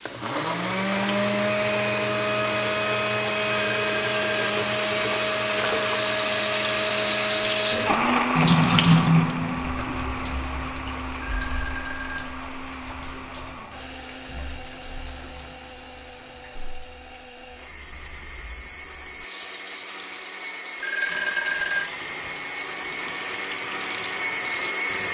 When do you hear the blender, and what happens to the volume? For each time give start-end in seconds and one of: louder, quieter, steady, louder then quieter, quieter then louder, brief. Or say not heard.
0.1-25.0 quieter then louder.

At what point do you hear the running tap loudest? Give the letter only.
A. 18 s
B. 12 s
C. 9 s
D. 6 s
C.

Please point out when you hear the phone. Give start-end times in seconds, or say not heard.
3.5-4.7, 11.2-12.8, 20.8-21.9.